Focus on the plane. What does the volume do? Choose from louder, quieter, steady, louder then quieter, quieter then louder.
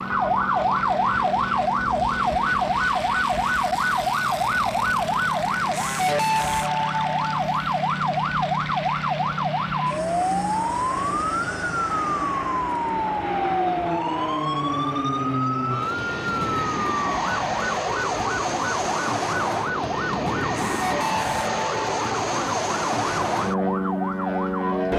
louder.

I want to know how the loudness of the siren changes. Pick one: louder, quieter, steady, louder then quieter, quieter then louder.
quieter.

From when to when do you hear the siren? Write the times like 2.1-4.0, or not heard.
0.0-24.8.